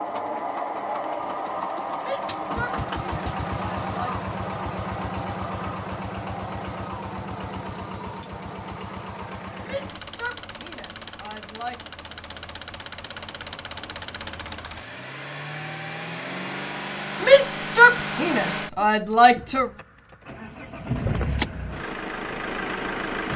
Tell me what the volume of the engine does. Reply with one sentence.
The loudness of the engine goes down, then up.